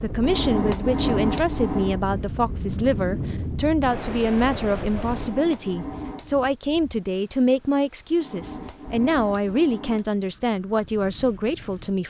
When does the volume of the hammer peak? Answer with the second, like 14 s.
1 s.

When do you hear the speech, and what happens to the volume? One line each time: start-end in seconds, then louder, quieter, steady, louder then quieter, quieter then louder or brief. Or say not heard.
0.0-12.0 steady.